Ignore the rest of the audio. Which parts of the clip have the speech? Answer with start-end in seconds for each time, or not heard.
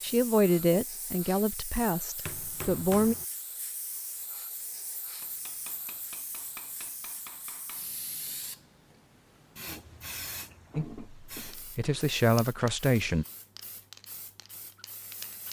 0.0-3.1, 10.8-13.2.